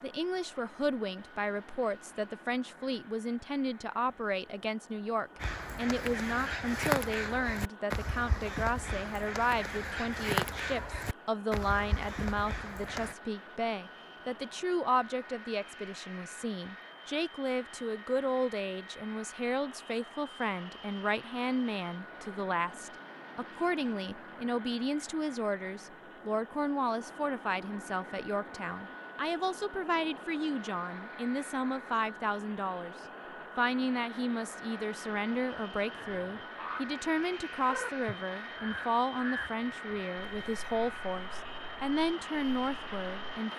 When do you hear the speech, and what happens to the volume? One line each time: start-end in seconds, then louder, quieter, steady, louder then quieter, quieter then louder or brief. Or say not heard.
0.0-33.0 steady
33.5-43.5 steady.